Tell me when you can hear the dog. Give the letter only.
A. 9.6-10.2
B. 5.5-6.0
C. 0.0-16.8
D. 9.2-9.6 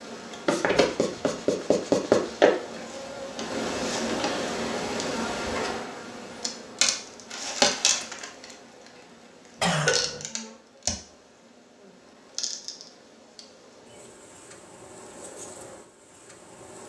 B.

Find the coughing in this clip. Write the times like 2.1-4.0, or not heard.
9.6-10.2.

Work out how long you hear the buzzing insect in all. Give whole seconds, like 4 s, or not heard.
17 s.